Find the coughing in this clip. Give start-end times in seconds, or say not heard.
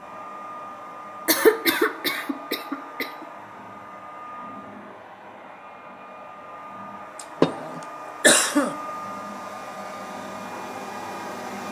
1.2-3.1, 7.4-8.7.